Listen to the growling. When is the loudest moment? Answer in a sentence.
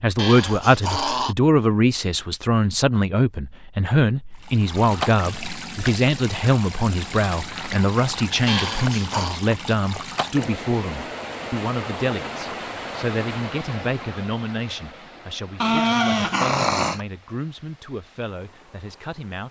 The volume of the growling peaks at 16 seconds.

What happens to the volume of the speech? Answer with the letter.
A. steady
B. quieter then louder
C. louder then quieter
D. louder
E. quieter
E.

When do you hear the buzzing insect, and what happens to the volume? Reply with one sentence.
You can't hear the buzzing insect here.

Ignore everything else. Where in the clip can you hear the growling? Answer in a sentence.
You can hear the growling from 0.1 to 1.4 s, from 8.4 to 9.4 s and from 15.6 to 17.1 s.